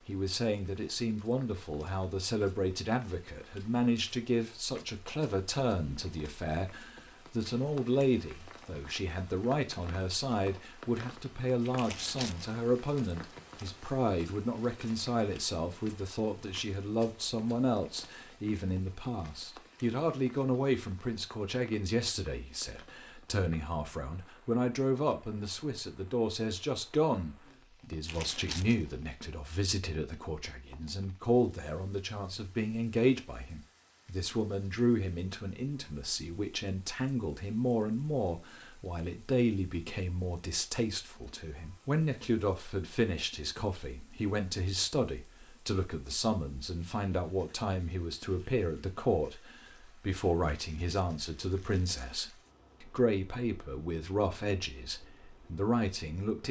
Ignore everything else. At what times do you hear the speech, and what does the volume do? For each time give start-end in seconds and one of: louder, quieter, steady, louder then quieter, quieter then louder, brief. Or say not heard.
0.1-56.4 steady.